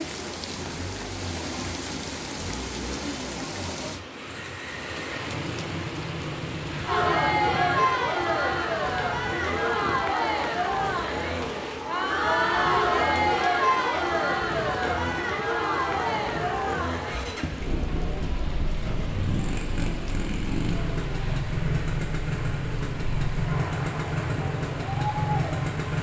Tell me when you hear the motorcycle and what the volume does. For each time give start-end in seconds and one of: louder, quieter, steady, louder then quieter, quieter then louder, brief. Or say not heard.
0.2-25.9 louder.